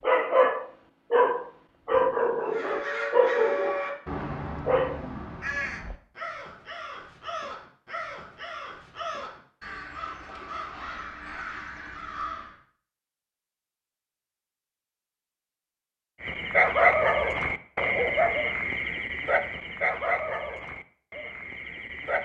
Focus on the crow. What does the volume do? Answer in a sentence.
The volume of the crow goes down.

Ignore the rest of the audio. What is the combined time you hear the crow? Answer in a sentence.
The crow can be heard for 10 seconds in total.